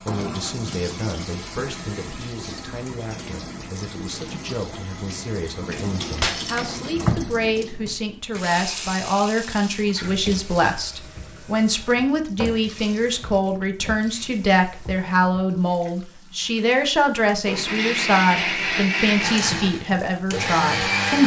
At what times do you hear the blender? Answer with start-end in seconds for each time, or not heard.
17.4-21.2.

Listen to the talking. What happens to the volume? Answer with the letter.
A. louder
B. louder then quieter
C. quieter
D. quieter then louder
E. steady
A.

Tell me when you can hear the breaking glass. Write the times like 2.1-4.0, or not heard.
6.2-6.9.